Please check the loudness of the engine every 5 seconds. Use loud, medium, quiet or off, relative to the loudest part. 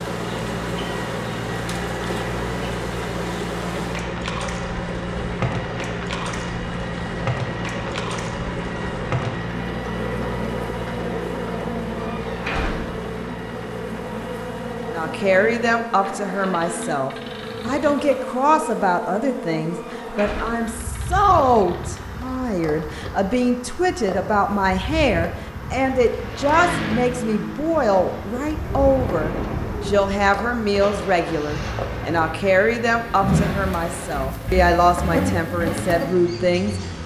loud, loud, loud, medium, quiet, loud, loud, loud.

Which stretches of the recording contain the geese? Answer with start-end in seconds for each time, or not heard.
not heard.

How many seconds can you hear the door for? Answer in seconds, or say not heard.
2 s.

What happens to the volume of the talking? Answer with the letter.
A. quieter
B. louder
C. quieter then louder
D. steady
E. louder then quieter
D.